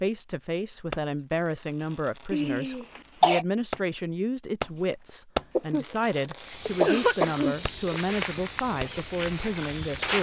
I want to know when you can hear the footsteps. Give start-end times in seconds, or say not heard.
6.3-10.1.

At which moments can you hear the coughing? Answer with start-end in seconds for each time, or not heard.
2.3-3.5, 5.5-7.5.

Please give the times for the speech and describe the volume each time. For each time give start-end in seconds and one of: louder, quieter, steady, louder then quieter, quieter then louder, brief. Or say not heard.
0.0-10.1 steady.